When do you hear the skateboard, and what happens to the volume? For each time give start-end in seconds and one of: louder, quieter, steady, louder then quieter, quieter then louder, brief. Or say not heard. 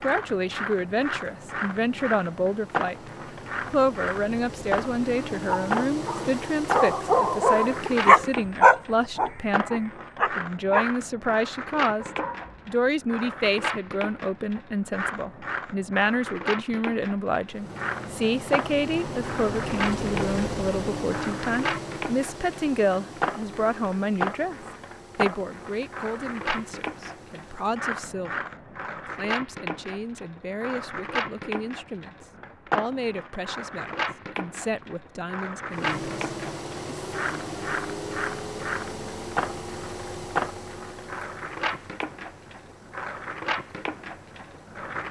0.0-45.0 steady.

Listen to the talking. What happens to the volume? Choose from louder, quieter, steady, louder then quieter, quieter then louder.
quieter.